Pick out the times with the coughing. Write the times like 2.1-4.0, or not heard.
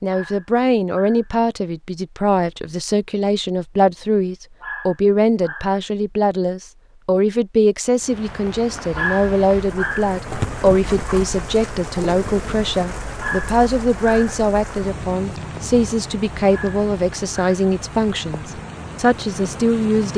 not heard.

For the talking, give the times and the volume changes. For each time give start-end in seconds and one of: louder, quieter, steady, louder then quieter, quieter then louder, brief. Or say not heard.
0.0-20.1 steady.